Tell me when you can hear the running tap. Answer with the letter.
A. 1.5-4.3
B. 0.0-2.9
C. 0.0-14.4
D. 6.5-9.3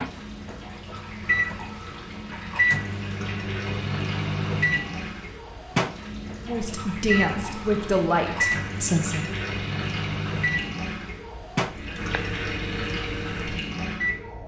C.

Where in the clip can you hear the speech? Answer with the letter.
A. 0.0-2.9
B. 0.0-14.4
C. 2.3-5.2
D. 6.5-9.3
D.